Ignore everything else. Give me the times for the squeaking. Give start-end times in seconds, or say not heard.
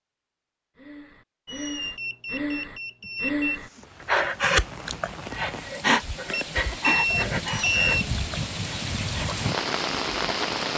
1.4-2.0, 7.5-8.0.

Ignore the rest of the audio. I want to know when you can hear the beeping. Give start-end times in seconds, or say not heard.
1.9-3.6, 6.3-8.1.